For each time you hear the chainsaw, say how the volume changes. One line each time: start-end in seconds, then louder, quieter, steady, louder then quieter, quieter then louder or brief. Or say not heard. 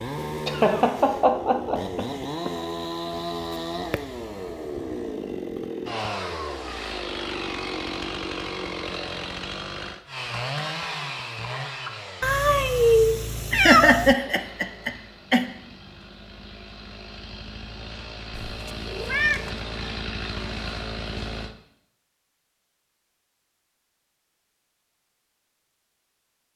0.0-21.6 quieter then louder.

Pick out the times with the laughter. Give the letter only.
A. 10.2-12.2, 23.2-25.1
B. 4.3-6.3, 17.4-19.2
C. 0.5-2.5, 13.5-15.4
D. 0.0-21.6
C.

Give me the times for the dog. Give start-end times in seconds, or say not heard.
not heard.